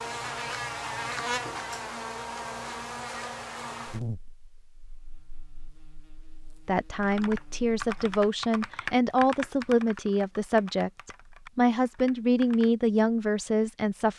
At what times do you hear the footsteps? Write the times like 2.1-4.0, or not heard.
not heard.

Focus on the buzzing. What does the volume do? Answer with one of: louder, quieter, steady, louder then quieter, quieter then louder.
quieter then louder.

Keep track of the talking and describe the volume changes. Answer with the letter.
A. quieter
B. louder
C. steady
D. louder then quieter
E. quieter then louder
C.